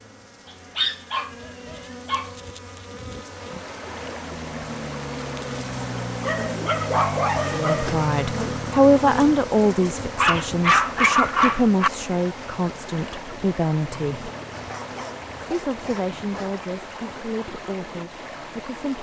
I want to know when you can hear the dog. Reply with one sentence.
You can hear the dog from 0.8 to 2.3 s, from 6.2 to 7.9 s, from 10.2 to 11.9 s and from 14.5 to 16.6 s.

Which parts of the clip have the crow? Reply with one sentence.
The crow can't be heard in this clip.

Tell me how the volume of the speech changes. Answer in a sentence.
The volume of the speech goes down.